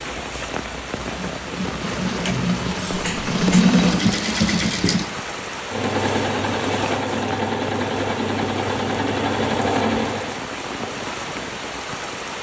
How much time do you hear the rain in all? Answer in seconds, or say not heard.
12 s.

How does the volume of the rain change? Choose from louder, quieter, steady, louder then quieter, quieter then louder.
steady.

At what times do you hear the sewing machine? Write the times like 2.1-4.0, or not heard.
0.0-10.4.